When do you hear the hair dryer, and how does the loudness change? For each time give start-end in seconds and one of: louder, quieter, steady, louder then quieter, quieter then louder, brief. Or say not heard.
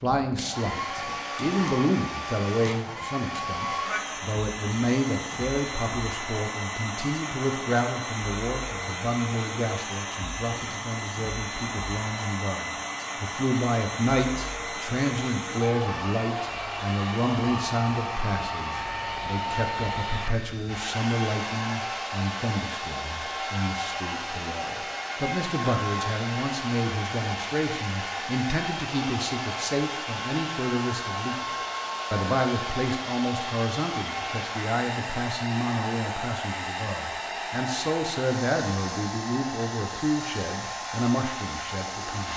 0.0-42.3 steady.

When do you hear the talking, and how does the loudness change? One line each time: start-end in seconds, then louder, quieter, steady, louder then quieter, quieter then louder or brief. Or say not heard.
0.0-42.3 steady.